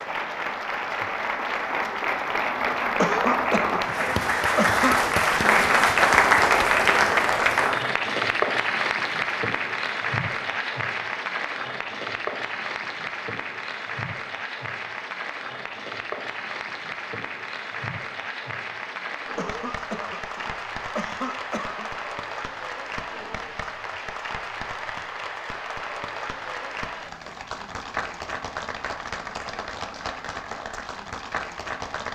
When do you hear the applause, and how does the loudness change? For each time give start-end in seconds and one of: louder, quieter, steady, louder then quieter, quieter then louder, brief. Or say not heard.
0.0-32.1 quieter.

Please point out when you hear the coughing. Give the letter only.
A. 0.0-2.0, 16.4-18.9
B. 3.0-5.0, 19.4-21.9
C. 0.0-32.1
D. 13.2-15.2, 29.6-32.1
B.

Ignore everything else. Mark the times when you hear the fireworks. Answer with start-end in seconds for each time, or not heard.
not heard.